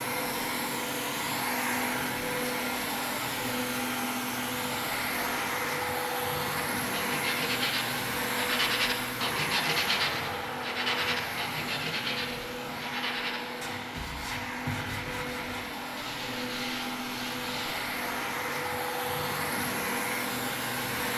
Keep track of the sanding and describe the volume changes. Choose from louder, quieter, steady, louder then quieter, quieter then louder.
quieter.